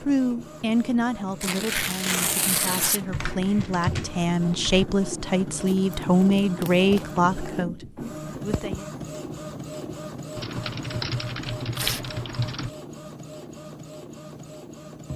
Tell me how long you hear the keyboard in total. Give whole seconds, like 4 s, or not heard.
4 s.